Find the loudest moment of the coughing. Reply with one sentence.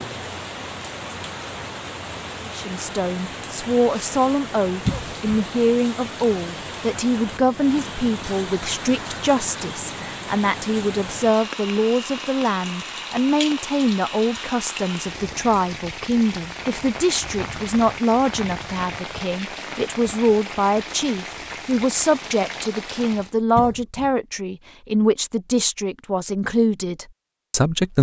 The loudest moment of the coughing is at 5 seconds.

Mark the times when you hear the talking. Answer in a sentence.
The talking can be heard from 2.4 to 27.9 s.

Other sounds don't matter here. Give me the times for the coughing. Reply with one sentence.
You can hear the coughing from 4.8 to 5.3 s and from 23.6 to 24.1 s.